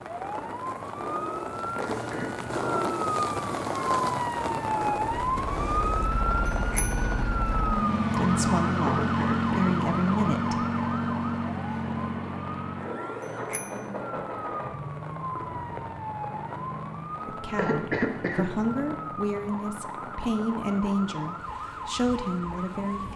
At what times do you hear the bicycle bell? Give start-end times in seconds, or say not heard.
6.5-7.1, 13.2-13.8.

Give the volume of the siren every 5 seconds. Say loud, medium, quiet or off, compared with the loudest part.
loud, loud, medium, medium, medium.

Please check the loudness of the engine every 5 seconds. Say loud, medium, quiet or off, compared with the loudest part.
off, loud, loud, quiet, off.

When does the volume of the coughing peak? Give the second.
18 s.